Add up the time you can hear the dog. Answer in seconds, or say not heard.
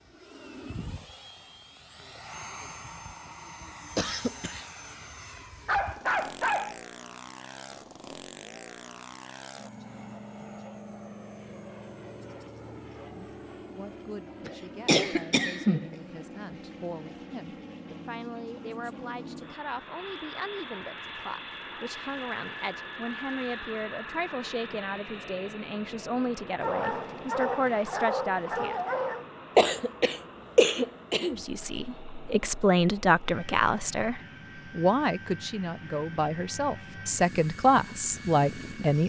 4 s.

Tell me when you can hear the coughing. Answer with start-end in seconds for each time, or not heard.
4.0-4.7, 14.4-15.9, 29.6-31.4.